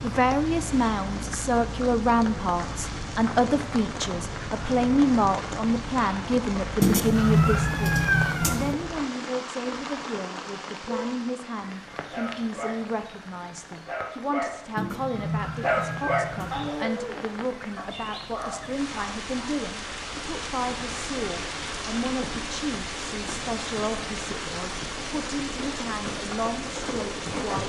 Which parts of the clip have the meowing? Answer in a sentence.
The meowing can be heard from 6.8 to 8.8 s and from 14.8 to 16.7 s.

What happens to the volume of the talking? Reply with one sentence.
The loudness of the talking goes down.